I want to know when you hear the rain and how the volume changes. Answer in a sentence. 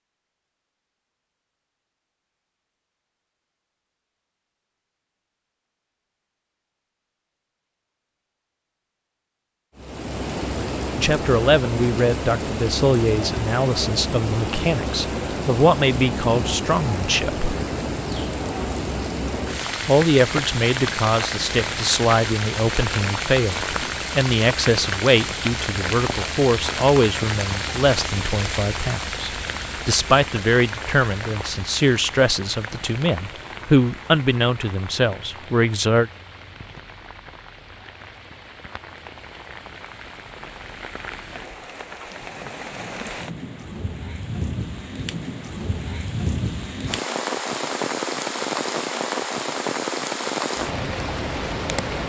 You can hear the rain from 9.8 to 52.0 s, getting quieter then louder.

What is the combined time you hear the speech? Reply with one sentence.
You can hear the speech for 23 seconds altogether.